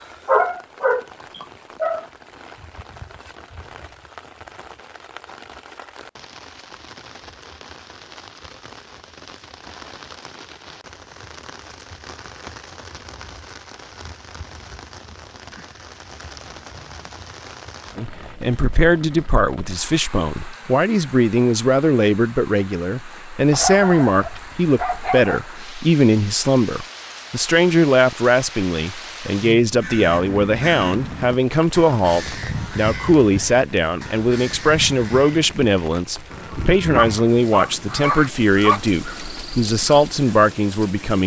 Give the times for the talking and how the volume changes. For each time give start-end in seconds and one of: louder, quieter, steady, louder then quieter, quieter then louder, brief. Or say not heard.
17.9-41.2 steady.